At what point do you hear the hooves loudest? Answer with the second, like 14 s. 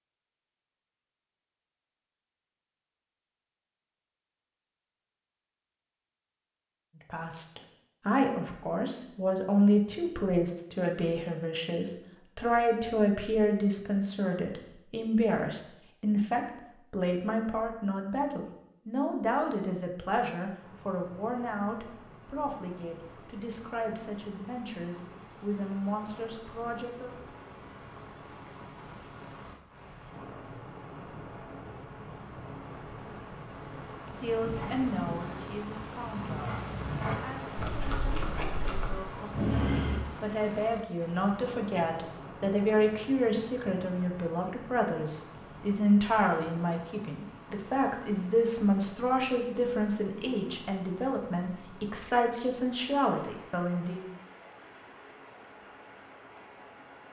40 s.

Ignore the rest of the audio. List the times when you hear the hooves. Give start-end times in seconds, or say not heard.
34.4-40.0.